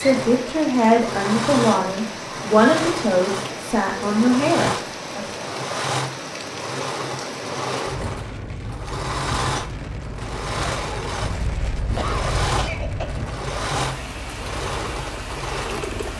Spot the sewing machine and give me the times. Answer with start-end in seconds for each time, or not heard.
0.0-16.1.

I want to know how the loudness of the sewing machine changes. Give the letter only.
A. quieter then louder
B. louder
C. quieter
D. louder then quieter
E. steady
E.